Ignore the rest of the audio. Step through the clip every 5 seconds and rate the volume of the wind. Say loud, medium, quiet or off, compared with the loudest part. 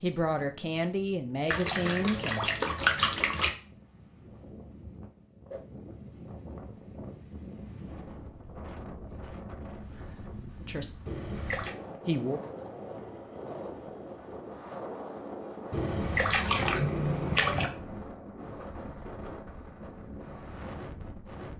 medium, loud, loud, loud, loud.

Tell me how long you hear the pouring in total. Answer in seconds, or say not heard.
5 s.